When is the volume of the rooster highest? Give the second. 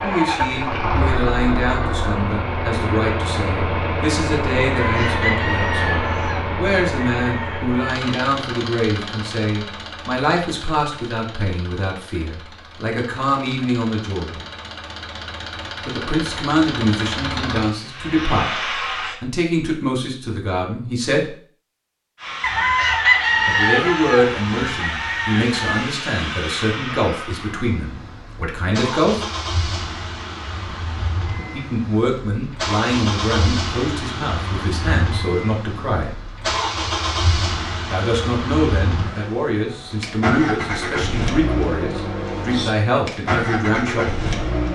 23 s.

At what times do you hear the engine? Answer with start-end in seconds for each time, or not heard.
0.0-19.1, 22.1-44.6.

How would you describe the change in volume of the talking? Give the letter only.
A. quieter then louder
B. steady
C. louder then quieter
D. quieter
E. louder
B.